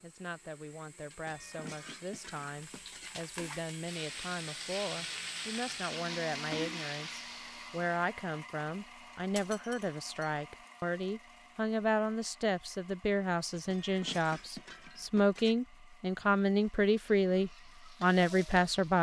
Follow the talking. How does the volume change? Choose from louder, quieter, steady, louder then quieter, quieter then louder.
louder.